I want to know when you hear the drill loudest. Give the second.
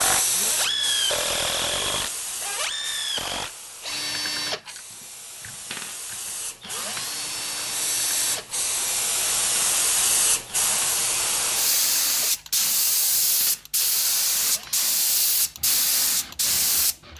1 s.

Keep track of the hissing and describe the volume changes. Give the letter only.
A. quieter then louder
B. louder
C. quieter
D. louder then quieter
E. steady
A.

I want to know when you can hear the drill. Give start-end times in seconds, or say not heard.
0.0-17.1.